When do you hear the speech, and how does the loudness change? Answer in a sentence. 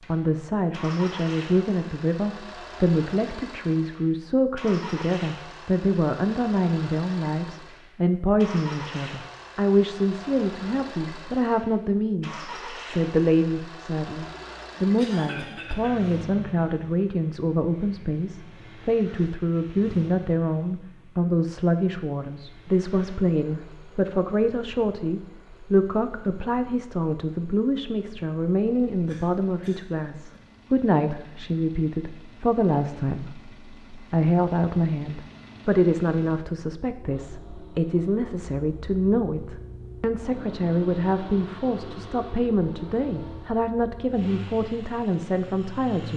You can hear the speech from 0.1 to 46.1 s, at a steady volume.